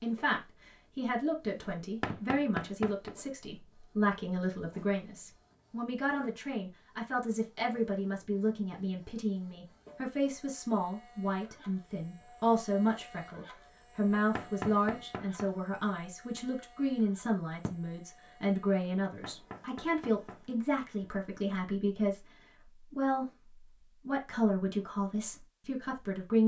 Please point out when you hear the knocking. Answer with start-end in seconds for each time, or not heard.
2.0-3.1, 14.3-15.5, 19.2-20.4.